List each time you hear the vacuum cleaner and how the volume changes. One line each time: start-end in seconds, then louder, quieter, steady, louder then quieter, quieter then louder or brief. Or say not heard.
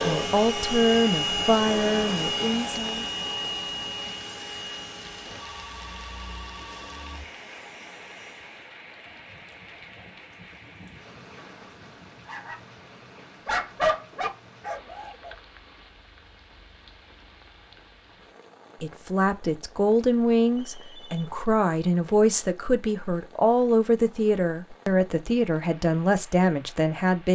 0.0-8.8 quieter.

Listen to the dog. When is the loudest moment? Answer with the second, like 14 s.
14 s.